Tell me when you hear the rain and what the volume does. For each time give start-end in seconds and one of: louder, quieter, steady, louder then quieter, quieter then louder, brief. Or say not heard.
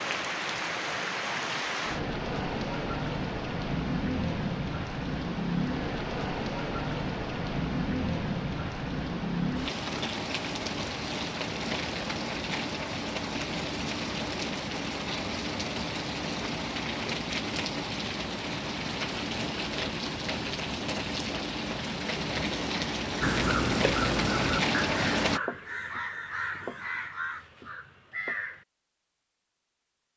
0.0-25.4 steady.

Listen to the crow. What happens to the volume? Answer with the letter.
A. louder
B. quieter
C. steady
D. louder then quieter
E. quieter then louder
B.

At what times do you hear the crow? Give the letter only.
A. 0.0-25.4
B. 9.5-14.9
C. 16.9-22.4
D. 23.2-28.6
D.